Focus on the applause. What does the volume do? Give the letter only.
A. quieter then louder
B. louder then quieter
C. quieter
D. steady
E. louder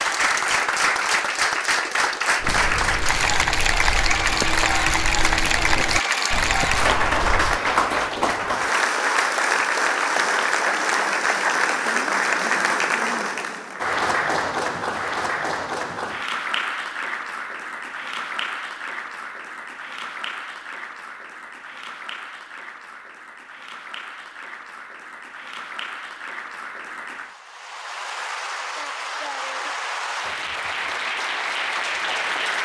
A.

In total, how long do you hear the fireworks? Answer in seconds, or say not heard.
not heard.